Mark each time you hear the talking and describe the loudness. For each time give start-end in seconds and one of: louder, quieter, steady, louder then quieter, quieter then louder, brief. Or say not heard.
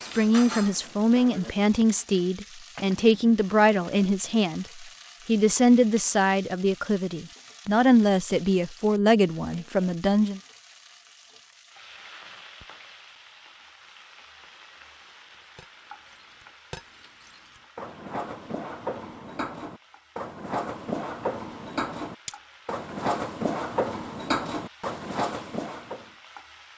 0.1-10.4 steady.